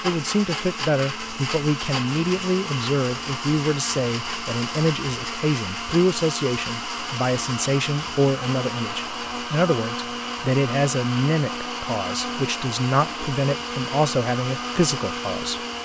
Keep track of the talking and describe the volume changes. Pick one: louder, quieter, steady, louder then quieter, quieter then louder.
steady.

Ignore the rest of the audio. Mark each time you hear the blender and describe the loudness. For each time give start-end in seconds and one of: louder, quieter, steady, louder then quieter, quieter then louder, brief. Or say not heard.
0.0-15.8 steady.